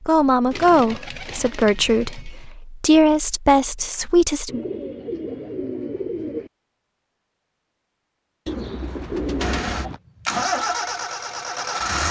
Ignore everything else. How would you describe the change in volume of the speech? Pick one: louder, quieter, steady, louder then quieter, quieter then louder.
quieter then louder.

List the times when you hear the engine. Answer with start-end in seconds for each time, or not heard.
9.4-12.0.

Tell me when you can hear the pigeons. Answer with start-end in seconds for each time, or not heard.
0.5-2.5, 4.5-6.5, 8.4-10.0.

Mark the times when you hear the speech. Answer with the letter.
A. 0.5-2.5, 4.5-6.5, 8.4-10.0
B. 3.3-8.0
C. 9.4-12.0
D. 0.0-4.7
D.